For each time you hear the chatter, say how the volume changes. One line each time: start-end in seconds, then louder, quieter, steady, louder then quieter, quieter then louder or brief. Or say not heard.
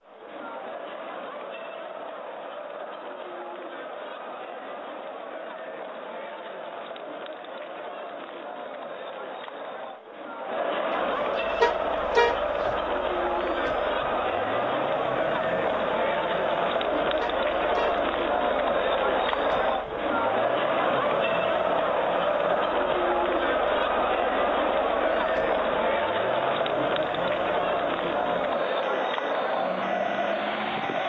0.0-31.0 louder.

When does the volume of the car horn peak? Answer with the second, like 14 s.
12 s.